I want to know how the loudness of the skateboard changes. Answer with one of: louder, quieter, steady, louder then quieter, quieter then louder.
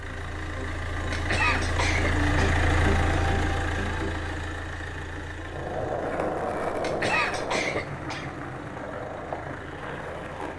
quieter.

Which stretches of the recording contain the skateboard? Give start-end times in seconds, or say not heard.
5.4-10.5.